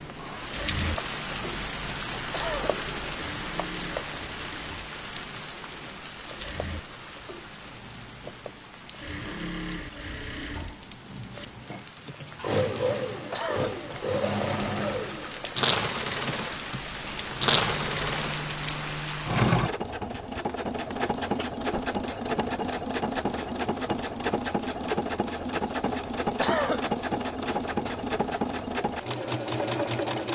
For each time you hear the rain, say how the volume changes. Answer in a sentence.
You can hear the rain from 0.0 to 19.4 s, getting quieter then louder.